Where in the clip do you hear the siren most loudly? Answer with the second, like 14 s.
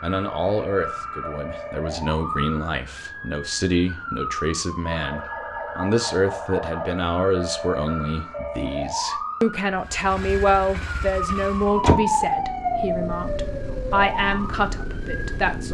12 s.